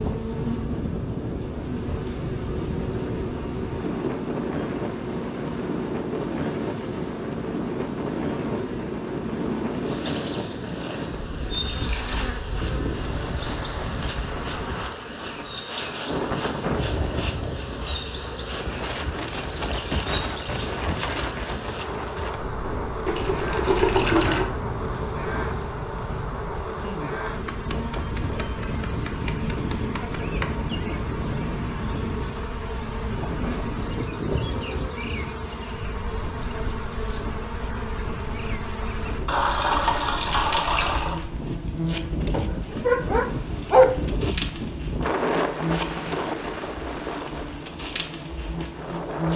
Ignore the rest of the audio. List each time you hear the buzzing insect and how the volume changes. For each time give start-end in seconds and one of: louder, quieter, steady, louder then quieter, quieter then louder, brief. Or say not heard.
0.0-49.3 steady.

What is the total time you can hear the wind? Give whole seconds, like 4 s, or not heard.
49 s.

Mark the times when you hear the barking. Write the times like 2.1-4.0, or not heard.
42.3-44.4.